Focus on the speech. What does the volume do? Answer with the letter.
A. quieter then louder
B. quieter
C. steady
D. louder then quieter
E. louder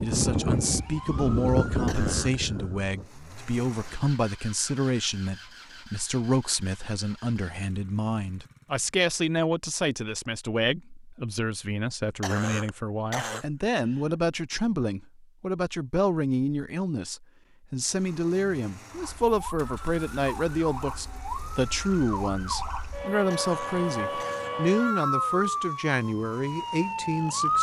C.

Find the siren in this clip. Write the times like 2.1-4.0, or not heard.
0.0-3.0, 18.9-27.5.